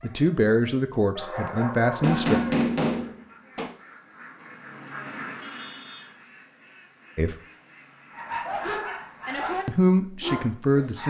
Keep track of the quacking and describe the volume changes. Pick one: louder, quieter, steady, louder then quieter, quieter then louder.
louder then quieter.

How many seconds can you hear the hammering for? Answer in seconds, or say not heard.
2 s.